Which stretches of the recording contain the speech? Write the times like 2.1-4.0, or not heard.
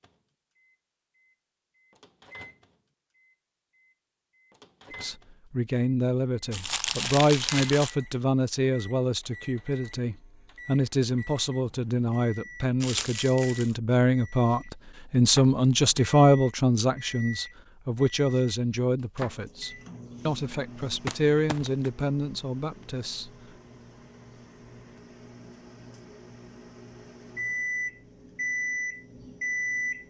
5.0-23.3.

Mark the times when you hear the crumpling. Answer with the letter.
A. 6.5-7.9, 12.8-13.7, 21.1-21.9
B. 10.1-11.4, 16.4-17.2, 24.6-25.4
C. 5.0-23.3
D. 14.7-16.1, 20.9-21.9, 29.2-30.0
A.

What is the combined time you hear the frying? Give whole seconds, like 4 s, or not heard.
not heard.